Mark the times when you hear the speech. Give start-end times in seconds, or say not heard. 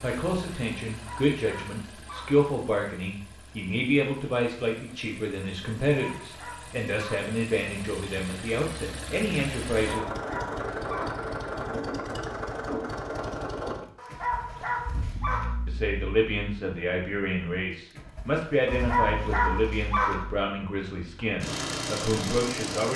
0.0-10.1, 15.7-22.9.